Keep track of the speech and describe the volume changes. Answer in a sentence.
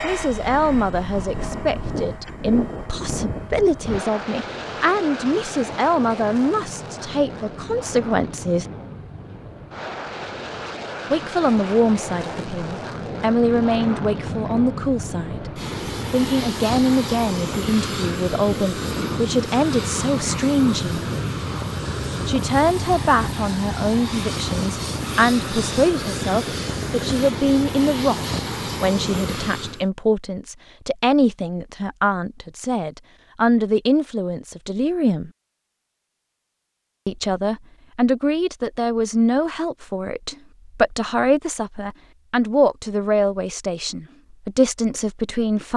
The loudness of the speech stays about the same.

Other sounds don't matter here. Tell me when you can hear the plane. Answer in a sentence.
The plane can be heard from 0.0 to 29.9 s.